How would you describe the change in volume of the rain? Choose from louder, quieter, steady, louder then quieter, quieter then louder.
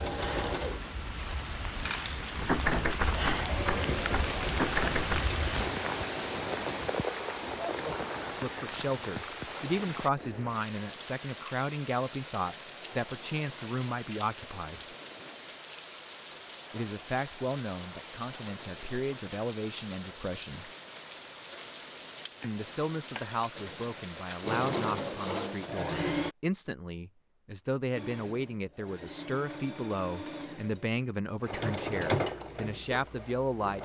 quieter.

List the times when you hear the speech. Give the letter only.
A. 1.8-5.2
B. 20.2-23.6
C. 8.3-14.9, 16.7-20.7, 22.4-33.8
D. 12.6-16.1
C.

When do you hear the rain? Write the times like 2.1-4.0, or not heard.
0.0-25.9.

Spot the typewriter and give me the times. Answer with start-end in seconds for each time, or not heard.
1.8-5.2.